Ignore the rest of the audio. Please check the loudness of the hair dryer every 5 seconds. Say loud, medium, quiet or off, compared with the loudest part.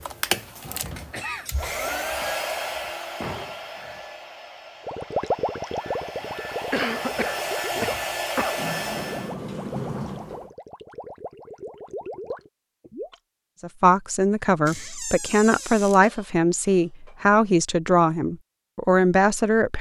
loud, loud, off, off.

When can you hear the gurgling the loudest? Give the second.
5 s.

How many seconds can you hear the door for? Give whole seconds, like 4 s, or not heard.
4 s.